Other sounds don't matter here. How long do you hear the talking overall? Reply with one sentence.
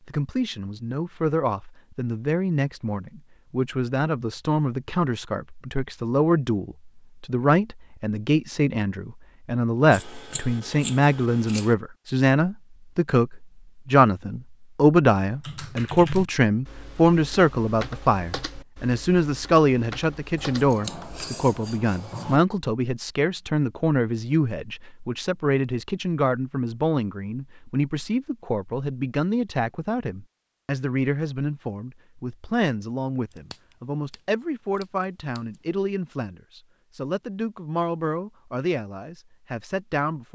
The talking can be heard for 40 seconds in total.